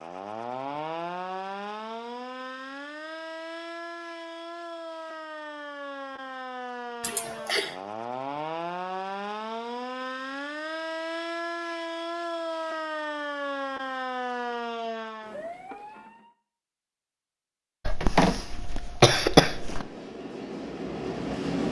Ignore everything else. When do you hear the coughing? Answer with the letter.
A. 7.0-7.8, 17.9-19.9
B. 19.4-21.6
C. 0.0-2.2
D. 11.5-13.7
A.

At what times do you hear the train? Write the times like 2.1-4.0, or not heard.
19.4-21.6.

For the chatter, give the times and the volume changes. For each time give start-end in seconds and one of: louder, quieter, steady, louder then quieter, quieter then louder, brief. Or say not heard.
not heard.